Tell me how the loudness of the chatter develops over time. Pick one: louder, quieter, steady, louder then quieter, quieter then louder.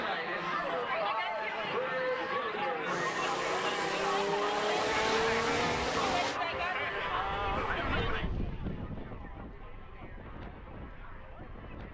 quieter.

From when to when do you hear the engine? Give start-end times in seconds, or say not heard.
2.9-6.4.